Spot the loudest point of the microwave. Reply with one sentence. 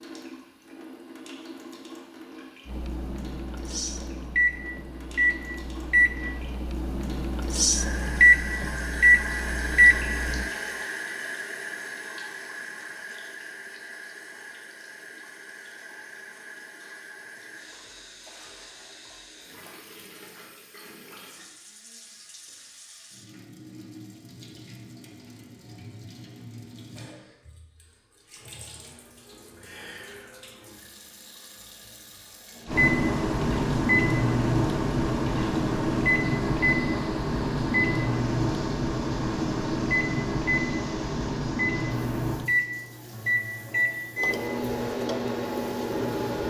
The loudest moment of the microwave is at 9 seconds.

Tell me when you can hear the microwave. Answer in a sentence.
The microwave can be heard from 2.6 to 10.5 s and from 32.6 to 46.4 s.